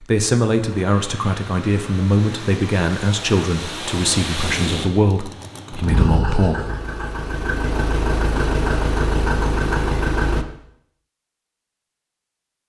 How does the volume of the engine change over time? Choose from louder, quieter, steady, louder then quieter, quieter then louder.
louder.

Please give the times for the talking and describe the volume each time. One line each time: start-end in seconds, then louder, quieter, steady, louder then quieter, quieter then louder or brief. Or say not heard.
0.0-6.5 steady.